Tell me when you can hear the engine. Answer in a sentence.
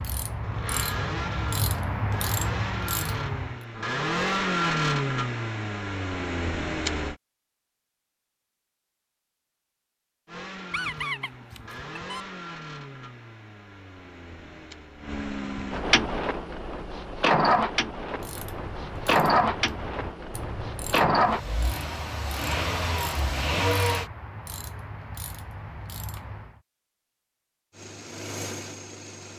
The engine can be heard from 0.2 to 7.2 s, from 10.2 to 24.1 s and from 27.7 to 29.3 s.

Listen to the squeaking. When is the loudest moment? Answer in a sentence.
The loudest moment of the squeaking is at 11 seconds.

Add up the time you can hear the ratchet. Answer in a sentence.
You can hear the ratchet for 12 seconds altogether.